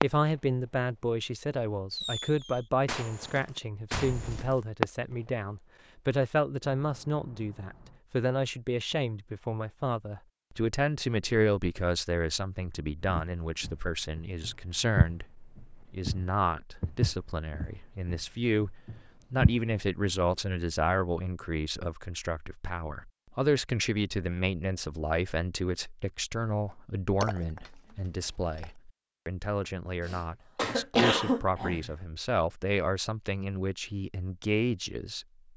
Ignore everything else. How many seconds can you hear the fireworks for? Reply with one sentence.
The fireworks can be heard for 5 seconds in total.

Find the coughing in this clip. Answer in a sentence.
You can hear the coughing from 30.1 to 31.9 s.